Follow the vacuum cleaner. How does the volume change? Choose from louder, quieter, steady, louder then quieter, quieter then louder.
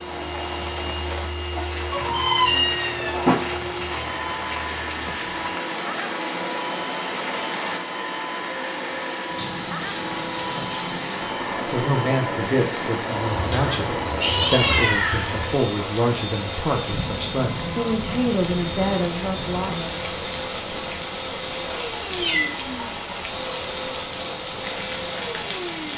steady.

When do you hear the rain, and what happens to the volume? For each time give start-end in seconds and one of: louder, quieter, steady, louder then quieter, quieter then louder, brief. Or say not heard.
0.0-25.9 steady.